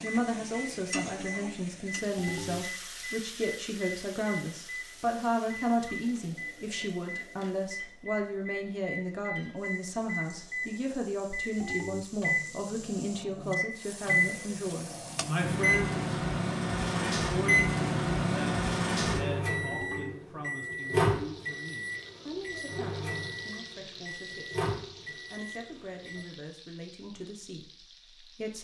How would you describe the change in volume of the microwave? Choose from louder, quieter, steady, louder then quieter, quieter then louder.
louder then quieter.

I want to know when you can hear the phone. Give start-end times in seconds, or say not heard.
2.1-2.6, 11.6-12.1, 19.7-20.1.